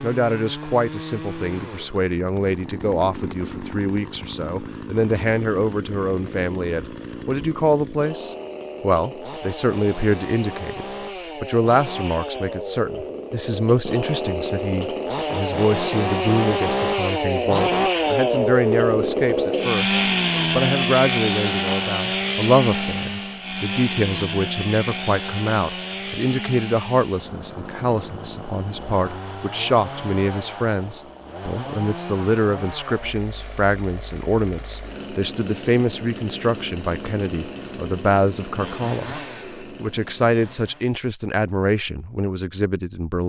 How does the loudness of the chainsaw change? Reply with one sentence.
The volume of the chainsaw goes up, then down.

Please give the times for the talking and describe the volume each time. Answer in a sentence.
You can hear the talking from 0.0 to 43.2 s, at a steady volume.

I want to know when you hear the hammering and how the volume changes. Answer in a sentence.
You can't hear the hammering here.